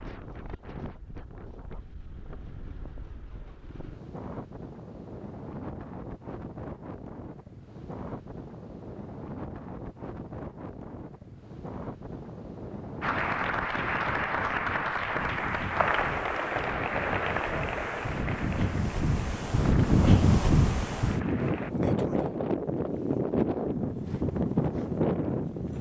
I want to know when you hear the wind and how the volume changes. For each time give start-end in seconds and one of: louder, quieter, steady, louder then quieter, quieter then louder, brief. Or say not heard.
0.0-25.7 louder.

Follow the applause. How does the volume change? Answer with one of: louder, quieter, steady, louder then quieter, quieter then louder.
quieter.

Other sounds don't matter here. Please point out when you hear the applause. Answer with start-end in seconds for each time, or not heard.
13.0-21.7.